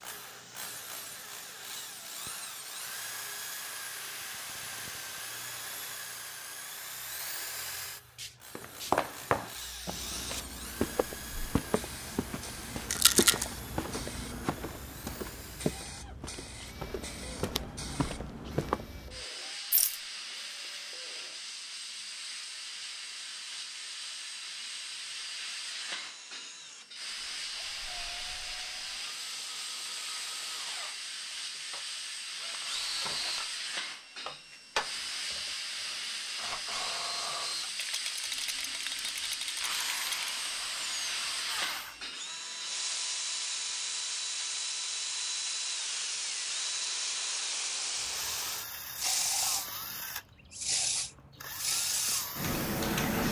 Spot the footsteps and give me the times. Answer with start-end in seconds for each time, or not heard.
8.6-19.0.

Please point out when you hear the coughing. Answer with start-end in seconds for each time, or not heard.
not heard.